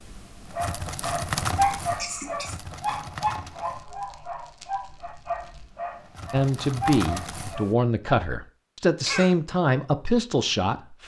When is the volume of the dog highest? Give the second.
2 s.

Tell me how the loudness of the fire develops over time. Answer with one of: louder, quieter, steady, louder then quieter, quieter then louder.
quieter then louder.